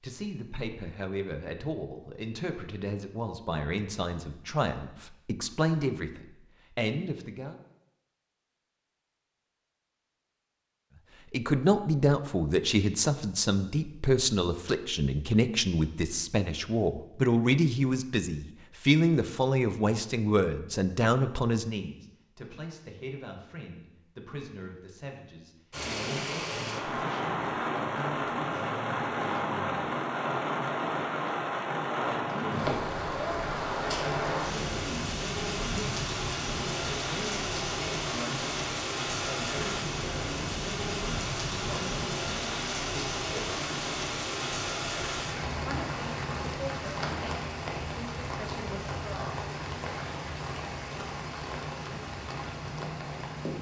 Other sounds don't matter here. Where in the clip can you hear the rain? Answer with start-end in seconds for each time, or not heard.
25.7-53.5.